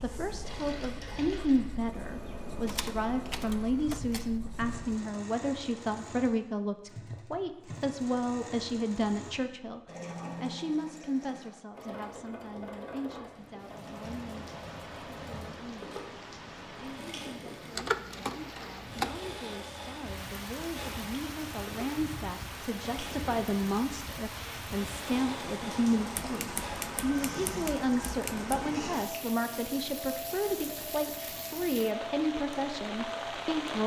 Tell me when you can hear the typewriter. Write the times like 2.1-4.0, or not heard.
2.6-4.3, 17.7-19.2, 26.1-28.8.